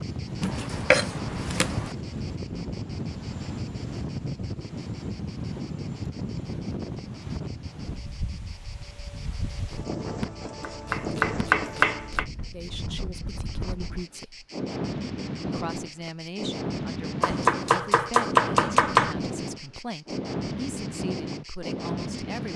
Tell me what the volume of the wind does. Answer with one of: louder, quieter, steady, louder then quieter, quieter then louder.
steady.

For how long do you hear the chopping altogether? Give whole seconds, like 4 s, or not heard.
5 s.